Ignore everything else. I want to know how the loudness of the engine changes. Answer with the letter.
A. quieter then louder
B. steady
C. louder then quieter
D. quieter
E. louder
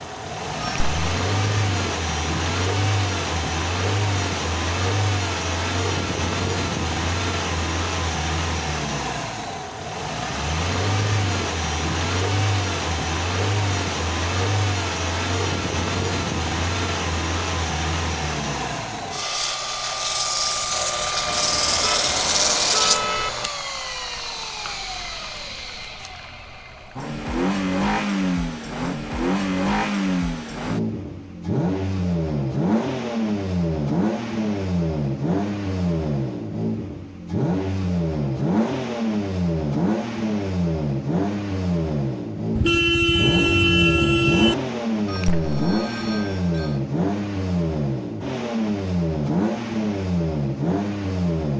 B.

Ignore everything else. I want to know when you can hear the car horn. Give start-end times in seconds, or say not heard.
21.4-23.3, 42.5-44.5.